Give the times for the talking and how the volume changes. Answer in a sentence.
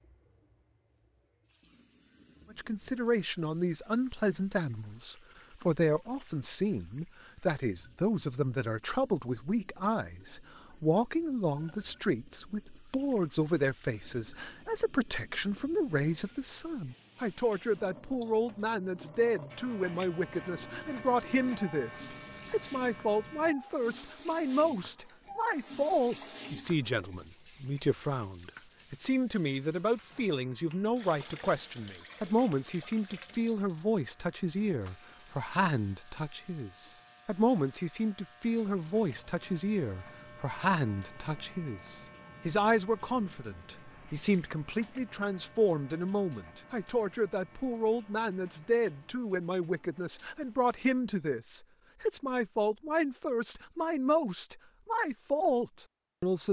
The talking can be heard from 2.5 to 56.4 s, at a steady volume.